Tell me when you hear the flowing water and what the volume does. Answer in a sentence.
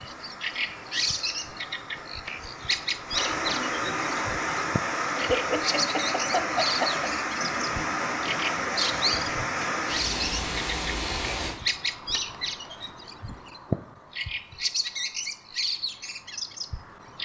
You can hear the flowing water from 0.0 to 11.6 s, getting louder.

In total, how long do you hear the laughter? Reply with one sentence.
The laughter can be heard for 2 seconds in total.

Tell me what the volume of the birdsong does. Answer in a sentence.
The volume of the birdsong stays about the same.